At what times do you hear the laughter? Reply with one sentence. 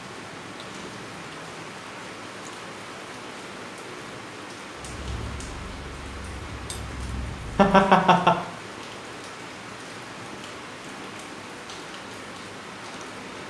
You can hear the laughter from 7.5 to 8.4 s.